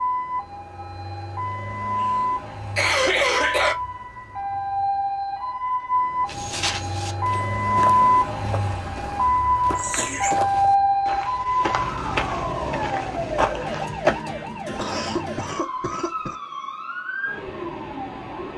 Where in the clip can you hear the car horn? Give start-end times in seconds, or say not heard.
not heard.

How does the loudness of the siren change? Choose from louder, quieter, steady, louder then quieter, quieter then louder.
louder then quieter.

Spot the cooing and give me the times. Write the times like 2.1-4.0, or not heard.
not heard.